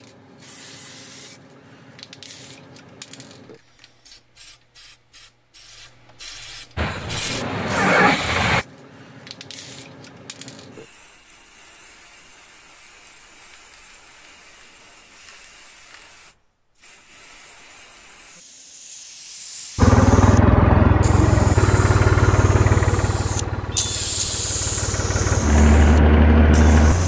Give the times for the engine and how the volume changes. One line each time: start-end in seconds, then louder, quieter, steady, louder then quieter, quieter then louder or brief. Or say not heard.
6.8-8.7 brief
19.8-27.0 quieter then louder.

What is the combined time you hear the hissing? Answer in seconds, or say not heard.
27 s.